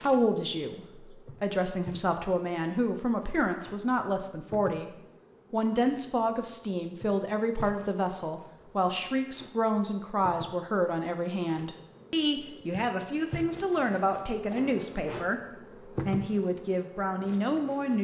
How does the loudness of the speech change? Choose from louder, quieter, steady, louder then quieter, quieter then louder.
steady.